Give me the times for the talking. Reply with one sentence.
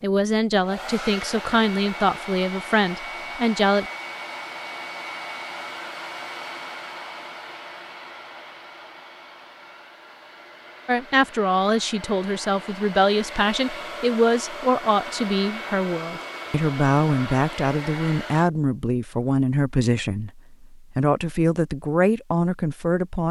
You can hear the talking from 0.0 to 3.9 s and from 10.8 to 23.2 s.